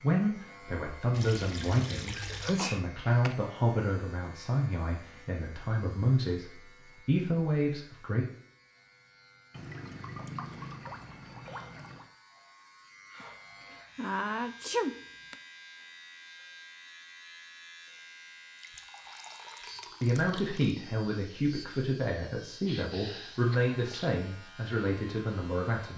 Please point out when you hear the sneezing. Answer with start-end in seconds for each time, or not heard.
2.4-3.4, 13.2-15.3, 22.6-24.1.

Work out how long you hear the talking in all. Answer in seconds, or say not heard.
14 s.